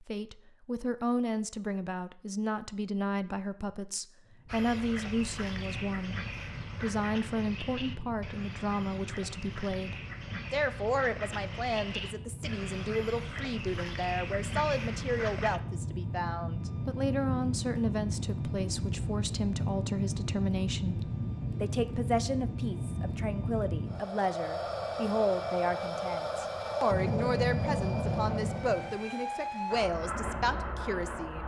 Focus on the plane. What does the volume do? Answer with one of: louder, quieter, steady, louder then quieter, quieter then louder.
louder.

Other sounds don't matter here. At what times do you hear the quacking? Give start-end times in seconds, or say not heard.
4.5-15.6.